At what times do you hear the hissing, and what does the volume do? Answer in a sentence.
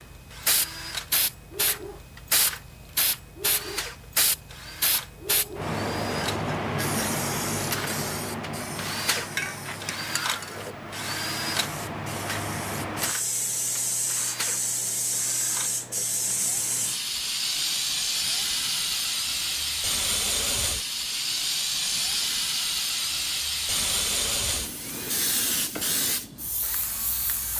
You can hear the hissing from 0.0 to 27.5 s, at a steady volume.